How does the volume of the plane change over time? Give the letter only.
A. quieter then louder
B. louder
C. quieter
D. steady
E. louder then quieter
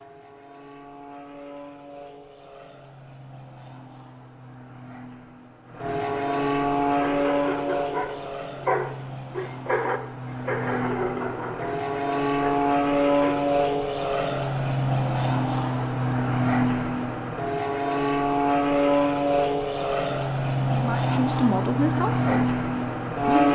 B.